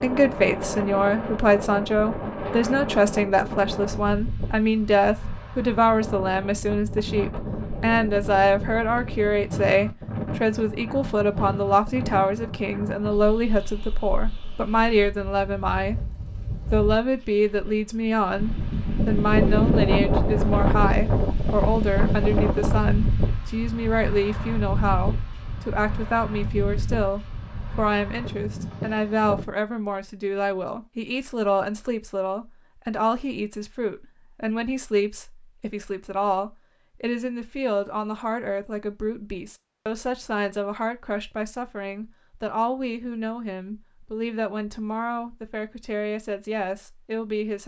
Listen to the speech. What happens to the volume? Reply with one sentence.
The loudness of the speech goes down.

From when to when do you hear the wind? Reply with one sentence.
You can hear the wind from 0.0 to 29.6 s.